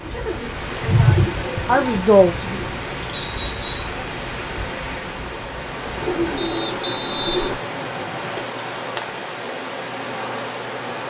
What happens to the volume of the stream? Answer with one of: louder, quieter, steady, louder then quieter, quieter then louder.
steady.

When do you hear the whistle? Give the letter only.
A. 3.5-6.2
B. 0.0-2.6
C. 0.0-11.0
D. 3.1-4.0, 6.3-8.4
D.